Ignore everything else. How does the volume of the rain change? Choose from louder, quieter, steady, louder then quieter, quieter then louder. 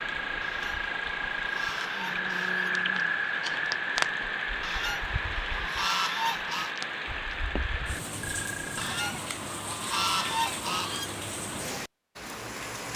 steady.